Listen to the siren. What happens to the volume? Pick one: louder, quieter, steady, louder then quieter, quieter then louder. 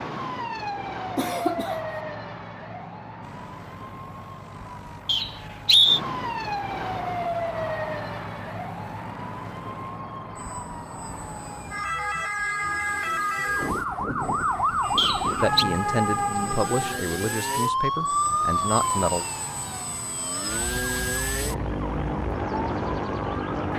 louder then quieter.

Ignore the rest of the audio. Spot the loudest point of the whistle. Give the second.
6 s.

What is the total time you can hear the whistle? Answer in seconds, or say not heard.
2 s.